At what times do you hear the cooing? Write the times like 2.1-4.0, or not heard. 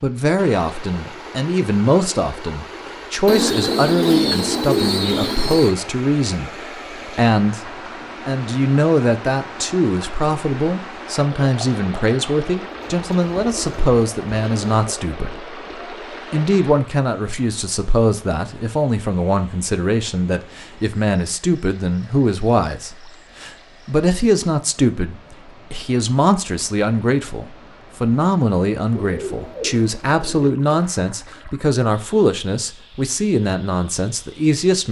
3.2-5.8, 12.6-14.9, 28.9-30.6.